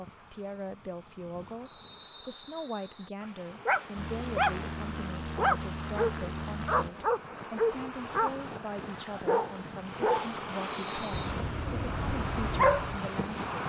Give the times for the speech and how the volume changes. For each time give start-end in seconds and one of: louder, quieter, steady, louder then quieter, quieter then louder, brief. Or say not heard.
0.0-13.4 steady.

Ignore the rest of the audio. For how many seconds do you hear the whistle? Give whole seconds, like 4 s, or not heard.
2 s.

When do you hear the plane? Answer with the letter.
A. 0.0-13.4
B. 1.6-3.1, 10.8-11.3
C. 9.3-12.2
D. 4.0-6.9
D.